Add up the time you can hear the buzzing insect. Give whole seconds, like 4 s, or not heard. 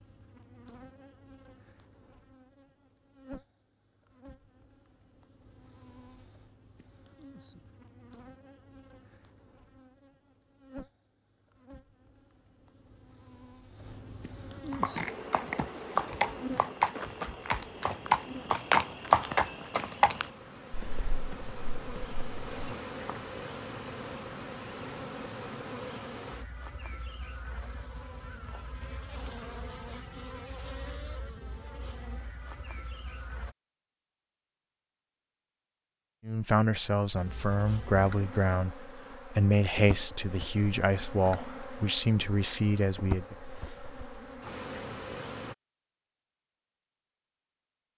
42 s.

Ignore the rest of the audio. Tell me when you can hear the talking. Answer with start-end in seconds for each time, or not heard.
36.2-43.4.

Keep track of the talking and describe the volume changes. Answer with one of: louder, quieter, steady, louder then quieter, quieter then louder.
steady.